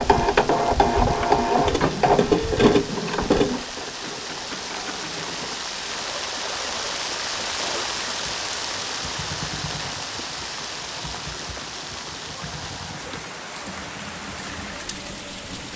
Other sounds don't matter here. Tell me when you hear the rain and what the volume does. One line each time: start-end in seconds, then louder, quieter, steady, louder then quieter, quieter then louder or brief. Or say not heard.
0.0-15.7 louder then quieter.